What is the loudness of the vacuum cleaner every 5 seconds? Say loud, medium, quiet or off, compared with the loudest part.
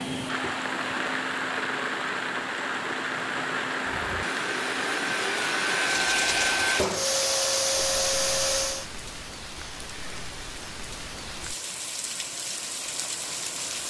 medium, loud, off.